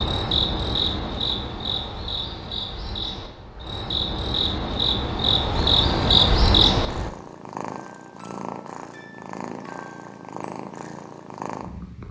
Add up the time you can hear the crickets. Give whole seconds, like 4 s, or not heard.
7 s.